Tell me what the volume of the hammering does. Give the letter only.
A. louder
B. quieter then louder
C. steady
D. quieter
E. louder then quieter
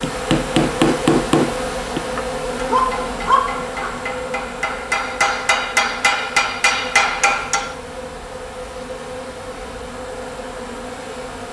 B.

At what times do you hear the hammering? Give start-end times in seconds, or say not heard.
0.0-7.8.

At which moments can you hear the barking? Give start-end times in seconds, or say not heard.
2.7-3.9.